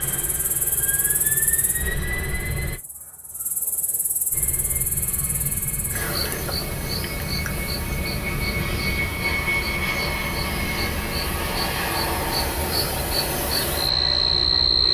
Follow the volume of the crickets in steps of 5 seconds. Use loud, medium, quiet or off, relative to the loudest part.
quiet, medium, loud.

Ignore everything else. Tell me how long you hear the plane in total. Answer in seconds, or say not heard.
13 s.